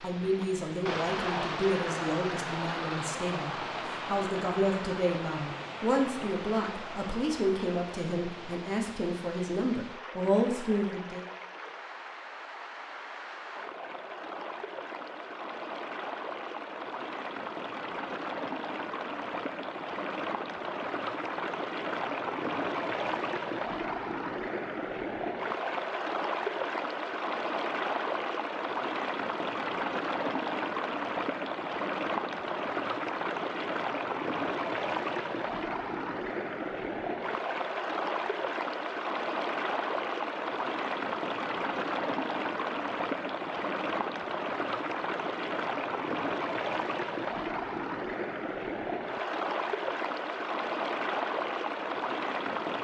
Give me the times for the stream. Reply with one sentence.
You can hear the stream from 0.0 to 52.7 s.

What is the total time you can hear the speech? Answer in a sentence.
You can hear the speech for 11 seconds altogether.